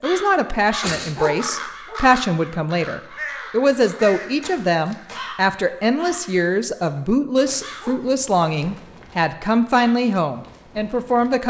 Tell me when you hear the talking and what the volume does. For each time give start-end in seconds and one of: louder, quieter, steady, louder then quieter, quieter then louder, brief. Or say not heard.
0.0-11.4 steady.